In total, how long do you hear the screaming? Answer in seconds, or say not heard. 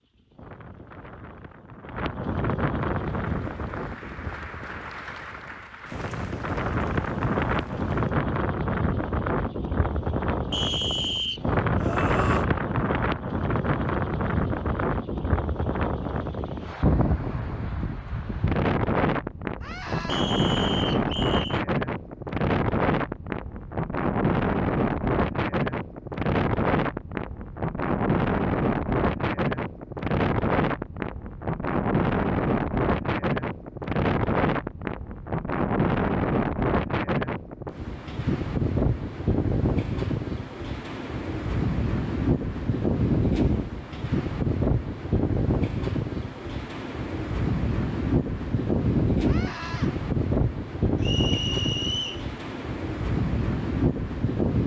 2 s.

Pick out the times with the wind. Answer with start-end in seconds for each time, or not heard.
0.0-54.6.